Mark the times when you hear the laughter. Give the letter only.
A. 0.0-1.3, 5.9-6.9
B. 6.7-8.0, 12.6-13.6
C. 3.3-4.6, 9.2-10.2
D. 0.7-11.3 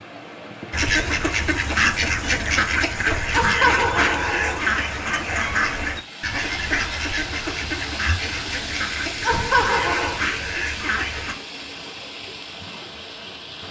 C.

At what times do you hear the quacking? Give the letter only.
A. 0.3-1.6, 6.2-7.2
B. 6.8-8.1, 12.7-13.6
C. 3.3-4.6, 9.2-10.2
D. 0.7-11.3
D.